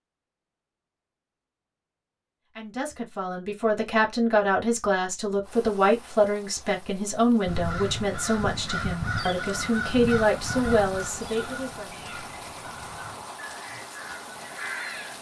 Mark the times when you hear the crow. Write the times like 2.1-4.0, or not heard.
7.5-15.1.